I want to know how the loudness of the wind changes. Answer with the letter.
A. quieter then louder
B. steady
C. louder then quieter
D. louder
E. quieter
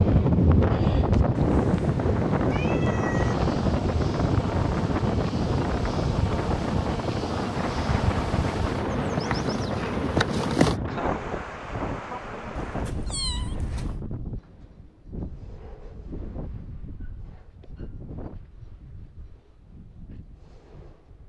E.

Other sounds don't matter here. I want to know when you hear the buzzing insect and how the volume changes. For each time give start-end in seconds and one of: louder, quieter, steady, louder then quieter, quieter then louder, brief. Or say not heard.
0.0-10.8 louder.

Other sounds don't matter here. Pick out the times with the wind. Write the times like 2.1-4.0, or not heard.
0.0-21.2.